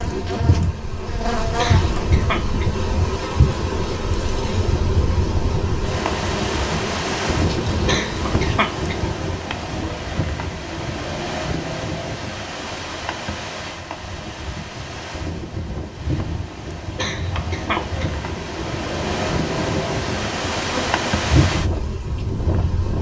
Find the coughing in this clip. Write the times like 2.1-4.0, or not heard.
1.6-2.9, 7.8-9.2, 16.9-18.2.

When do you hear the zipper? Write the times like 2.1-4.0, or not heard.
not heard.